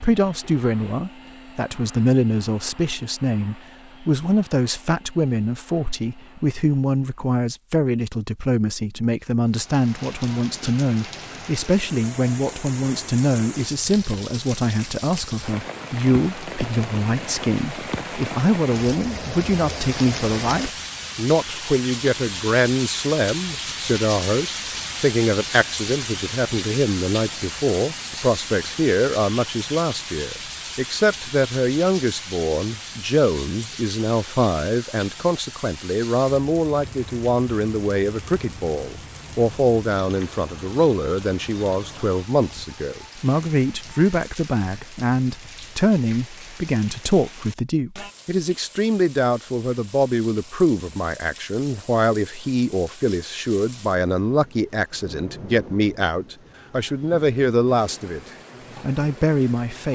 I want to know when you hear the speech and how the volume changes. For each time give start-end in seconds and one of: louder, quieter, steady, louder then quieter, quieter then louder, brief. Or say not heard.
0.0-58.2 steady
58.8-59.8 brief.